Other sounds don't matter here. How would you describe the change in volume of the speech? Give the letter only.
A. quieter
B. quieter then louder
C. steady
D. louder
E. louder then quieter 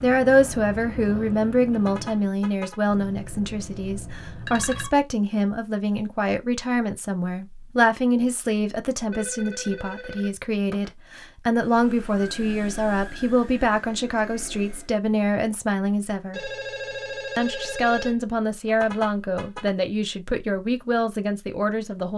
C.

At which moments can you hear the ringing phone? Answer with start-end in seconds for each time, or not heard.
2.9-4.9, 9.1-10.9, 16.3-18.2.